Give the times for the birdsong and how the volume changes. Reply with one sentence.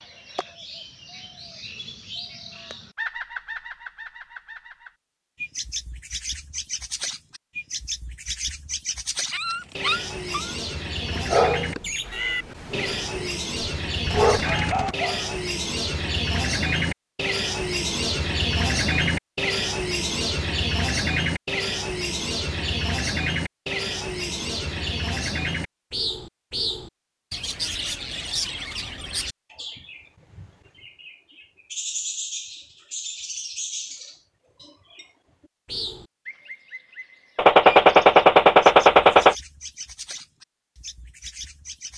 You can hear the birdsong from 0.0 to 41.9 s, getting louder then quieter.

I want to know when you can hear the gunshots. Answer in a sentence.
You can hear the gunshots from 14.1 to 14.9 s and from 37.4 to 39.4 s.